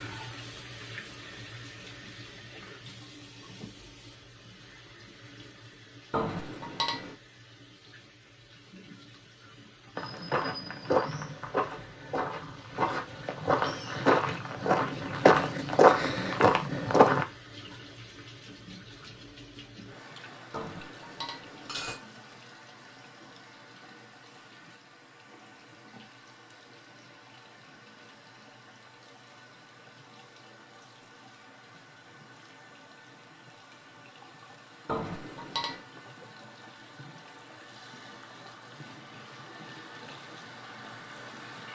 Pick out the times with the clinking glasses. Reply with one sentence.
The clinking glasses can be heard from 6.1 to 7.2 s, from 20.5 to 22.0 s and from 34.9 to 35.8 s.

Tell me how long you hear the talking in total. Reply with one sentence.
The talking can't be heard in this clip.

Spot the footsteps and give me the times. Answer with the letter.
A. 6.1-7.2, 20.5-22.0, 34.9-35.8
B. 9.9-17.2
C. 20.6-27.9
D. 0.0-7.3
B.